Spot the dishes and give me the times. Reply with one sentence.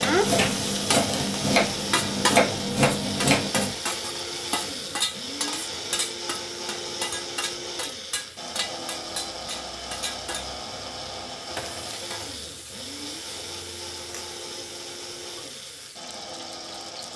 You can't hear the dishes here.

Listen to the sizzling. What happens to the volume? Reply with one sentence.
The loudness of the sizzling goes down.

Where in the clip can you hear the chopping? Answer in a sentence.
You can hear the chopping from 0.0 to 3.8 s.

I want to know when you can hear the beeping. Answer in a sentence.
The beeping can't be heard in this clip.